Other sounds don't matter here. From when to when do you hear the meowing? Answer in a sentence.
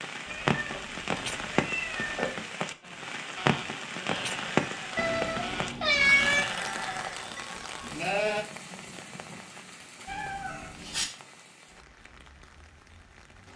The meowing can be heard from 0.2 to 2.4 s, from 5.0 to 6.5 s and from 10.1 to 11.1 s.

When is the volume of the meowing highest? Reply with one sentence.
The loudest moment of the meowing is at 6 seconds.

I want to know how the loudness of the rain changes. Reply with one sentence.
The loudness of the rain goes down.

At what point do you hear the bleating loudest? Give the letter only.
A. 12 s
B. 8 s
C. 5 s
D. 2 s
B.